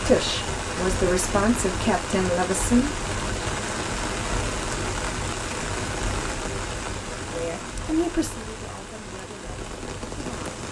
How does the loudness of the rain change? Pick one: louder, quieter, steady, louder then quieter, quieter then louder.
quieter.